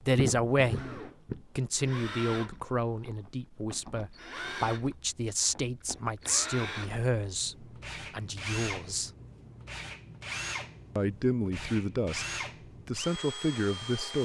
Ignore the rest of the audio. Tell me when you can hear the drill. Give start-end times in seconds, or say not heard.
0.0-14.2.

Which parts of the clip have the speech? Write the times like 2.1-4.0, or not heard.
0.0-9.1, 10.9-12.2, 12.8-14.2.